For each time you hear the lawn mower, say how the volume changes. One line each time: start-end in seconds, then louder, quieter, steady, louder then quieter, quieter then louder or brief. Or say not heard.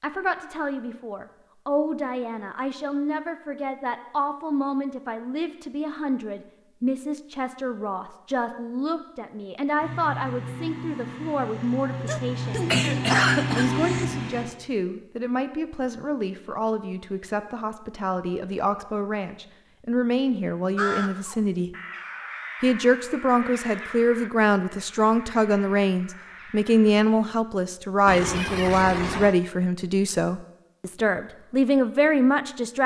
9.8-14.4 louder.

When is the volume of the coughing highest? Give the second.
13 s.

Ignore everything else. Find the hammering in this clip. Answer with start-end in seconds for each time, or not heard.
not heard.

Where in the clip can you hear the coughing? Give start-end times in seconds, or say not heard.
12.1-14.1, 28.1-29.4.